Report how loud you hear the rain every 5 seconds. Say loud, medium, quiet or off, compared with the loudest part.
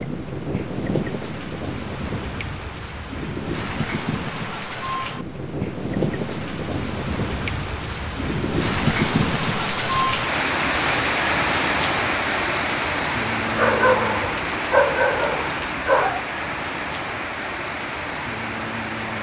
medium, loud, loud, medium.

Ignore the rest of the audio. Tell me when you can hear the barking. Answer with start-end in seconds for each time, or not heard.
13.6-16.2.